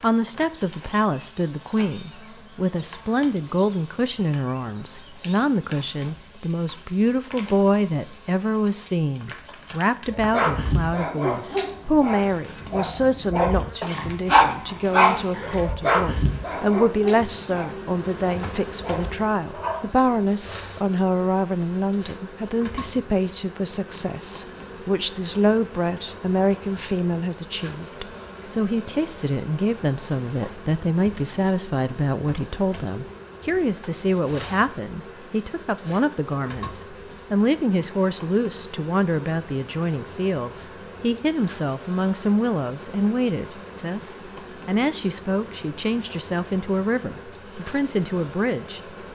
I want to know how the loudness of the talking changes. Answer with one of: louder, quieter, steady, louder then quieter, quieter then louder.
steady.